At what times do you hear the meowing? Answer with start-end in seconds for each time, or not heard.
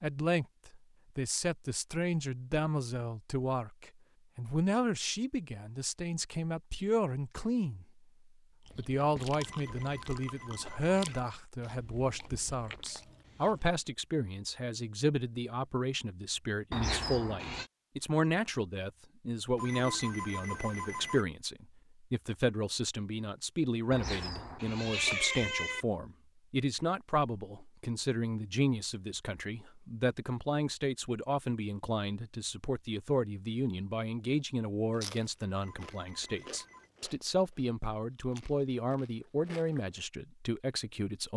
16.7-17.7, 23.9-25.9.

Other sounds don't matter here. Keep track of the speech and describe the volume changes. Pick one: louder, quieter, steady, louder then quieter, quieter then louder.
steady.